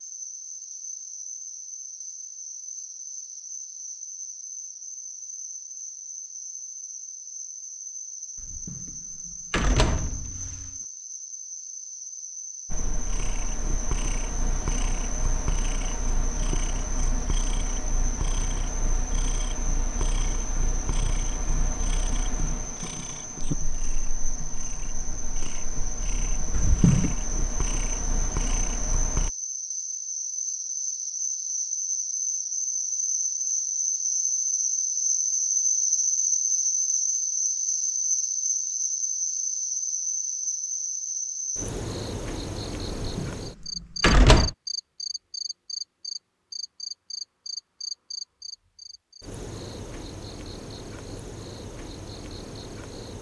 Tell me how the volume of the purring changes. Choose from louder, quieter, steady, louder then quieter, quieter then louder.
steady.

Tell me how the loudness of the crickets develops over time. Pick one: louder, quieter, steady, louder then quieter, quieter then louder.
louder then quieter.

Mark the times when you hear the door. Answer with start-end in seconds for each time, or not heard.
8.3-10.7, 26.5-27.1, 43.0-44.5.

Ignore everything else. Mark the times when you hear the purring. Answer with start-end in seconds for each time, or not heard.
12.7-29.3.